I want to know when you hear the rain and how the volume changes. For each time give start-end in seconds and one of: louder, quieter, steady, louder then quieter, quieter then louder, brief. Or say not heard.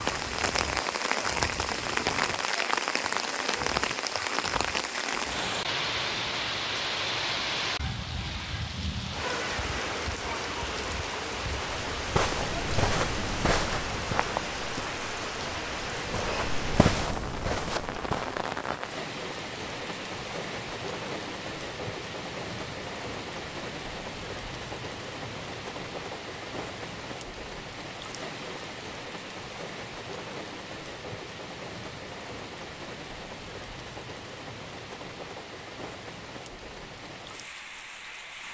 0.0-38.4 quieter.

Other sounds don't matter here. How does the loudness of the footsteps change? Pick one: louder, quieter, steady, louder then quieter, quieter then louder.
quieter then louder.